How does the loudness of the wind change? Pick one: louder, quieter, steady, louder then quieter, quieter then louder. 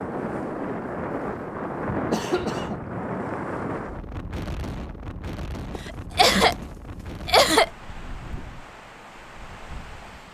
quieter.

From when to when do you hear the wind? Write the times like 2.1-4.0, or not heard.
0.0-10.2.